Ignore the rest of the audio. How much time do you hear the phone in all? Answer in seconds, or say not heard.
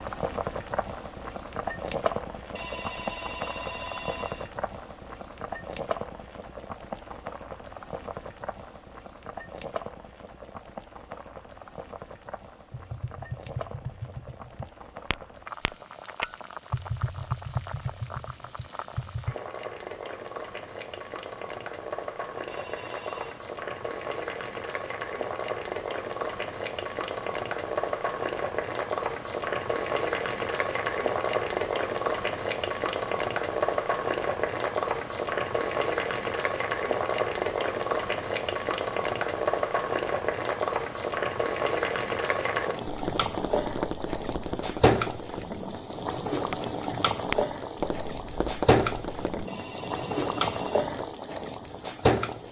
4 s.